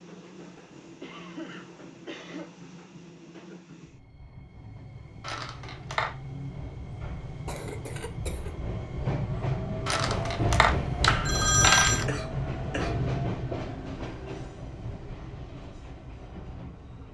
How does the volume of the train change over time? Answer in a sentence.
The loudness of the train goes up, then down.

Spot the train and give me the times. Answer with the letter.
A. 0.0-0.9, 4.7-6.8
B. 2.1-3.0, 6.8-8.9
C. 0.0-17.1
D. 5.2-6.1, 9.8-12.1
C.